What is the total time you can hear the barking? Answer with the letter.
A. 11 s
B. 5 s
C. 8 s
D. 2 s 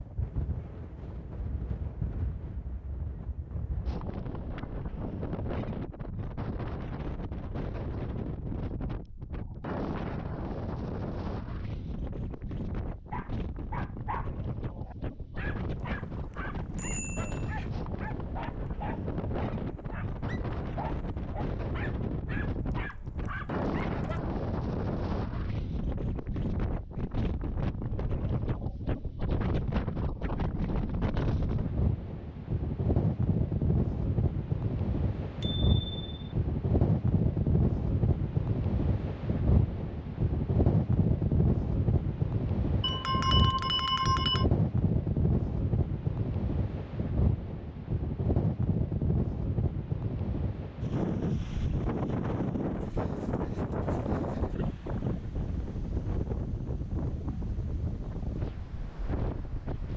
A.